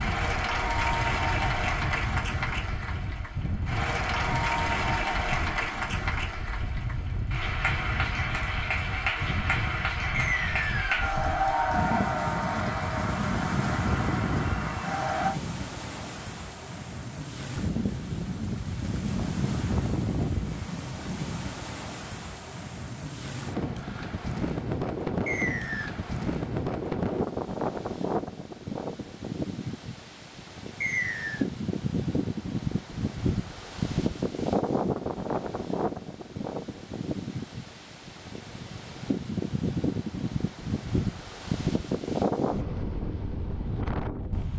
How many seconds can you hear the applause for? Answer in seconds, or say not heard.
15 s.